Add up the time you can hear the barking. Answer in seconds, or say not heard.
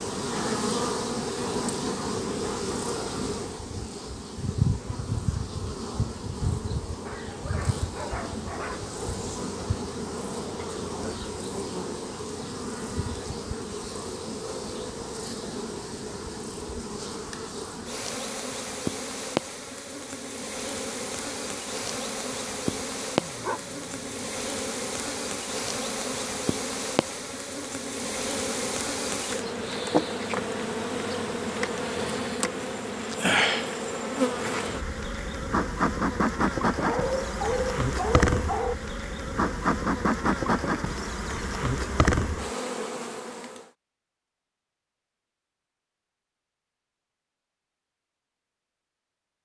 5 s.